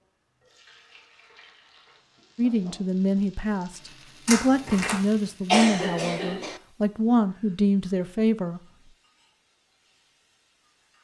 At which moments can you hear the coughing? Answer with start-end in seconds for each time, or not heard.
5.5-6.6.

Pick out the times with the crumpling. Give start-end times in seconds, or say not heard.
4.2-5.0.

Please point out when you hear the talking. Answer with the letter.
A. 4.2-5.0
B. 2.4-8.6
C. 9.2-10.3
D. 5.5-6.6
B.